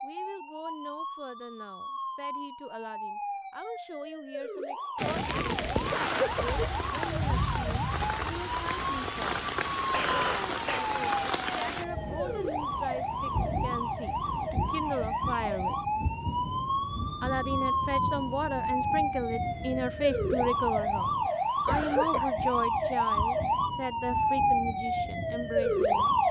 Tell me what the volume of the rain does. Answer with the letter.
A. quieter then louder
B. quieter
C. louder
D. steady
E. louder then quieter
B.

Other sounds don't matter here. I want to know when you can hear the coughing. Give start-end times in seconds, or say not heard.
5.9-6.7, 9.9-10.8, 21.6-22.3.